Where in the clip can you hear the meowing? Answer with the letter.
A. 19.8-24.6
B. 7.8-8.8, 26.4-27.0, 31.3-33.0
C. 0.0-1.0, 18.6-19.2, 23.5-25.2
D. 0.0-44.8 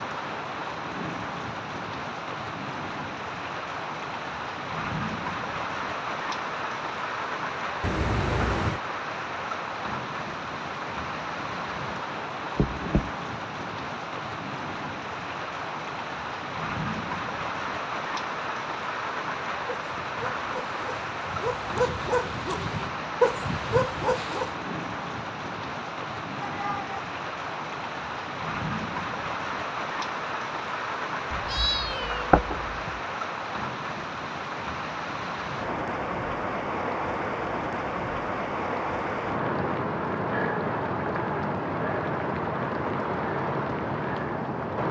B.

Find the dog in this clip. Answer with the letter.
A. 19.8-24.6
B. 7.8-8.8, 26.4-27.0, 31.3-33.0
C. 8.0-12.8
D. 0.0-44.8
A.